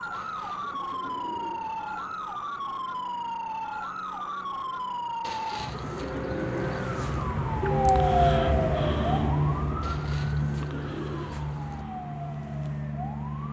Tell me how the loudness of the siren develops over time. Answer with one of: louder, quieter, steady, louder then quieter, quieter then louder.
louder then quieter.